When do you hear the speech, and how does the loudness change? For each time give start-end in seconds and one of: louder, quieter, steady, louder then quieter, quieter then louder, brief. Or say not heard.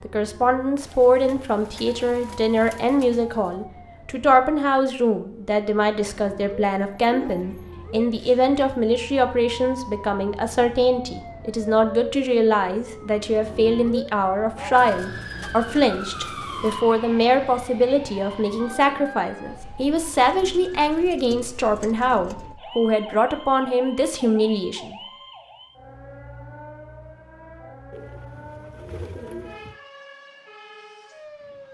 0.0-24.9 steady.